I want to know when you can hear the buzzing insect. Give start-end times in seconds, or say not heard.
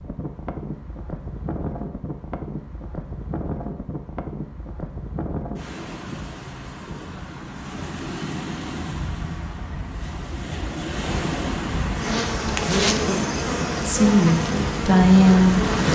11.9-15.9.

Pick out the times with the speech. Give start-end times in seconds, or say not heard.
13.8-15.7.